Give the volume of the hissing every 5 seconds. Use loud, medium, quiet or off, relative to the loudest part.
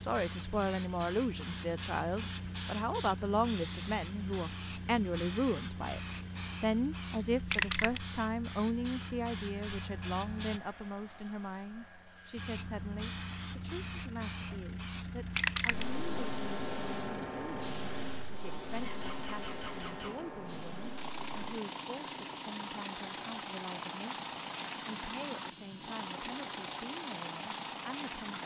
loud, loud, loud, loud, medium, medium.